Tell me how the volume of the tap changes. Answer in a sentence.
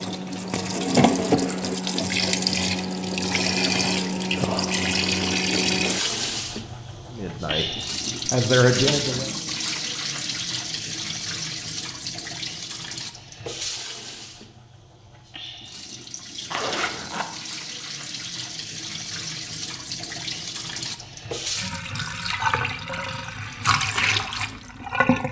The loudness of the tap goes down, then up.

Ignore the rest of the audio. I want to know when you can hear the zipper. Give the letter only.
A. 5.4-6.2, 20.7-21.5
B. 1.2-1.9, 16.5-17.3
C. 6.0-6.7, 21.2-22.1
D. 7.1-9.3
B.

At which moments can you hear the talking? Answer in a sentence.
You can hear the talking from 7.1 to 9.3 s.